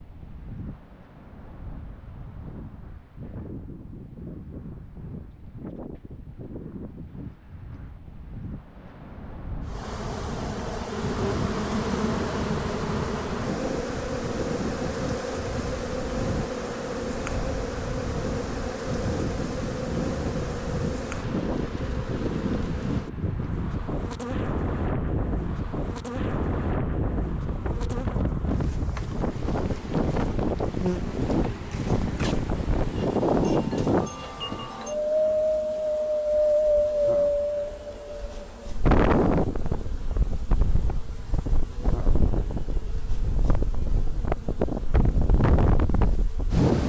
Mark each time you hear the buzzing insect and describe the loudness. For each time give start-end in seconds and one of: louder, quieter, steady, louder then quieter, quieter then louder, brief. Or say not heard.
9.7-46.7 quieter.